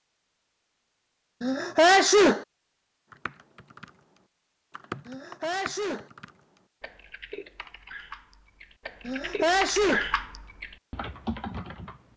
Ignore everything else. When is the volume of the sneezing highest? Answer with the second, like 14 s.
2 s.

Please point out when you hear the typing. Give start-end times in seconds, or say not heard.
3.1-12.1.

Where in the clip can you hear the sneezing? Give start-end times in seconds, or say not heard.
1.4-2.5, 5.0-6.1, 9.1-10.1.